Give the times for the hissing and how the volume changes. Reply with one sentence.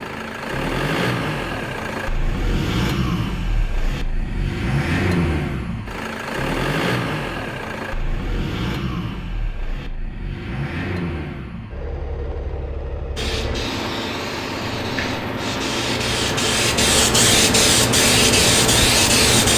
You can hear the hissing from 13.2 to 19.5 s, getting louder.